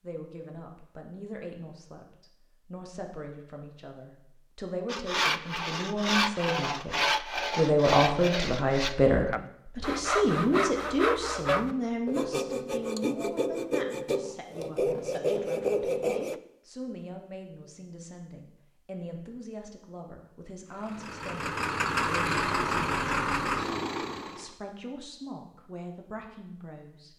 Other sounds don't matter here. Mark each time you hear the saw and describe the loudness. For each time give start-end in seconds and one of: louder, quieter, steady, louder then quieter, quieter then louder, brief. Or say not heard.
4.8-16.4 steady.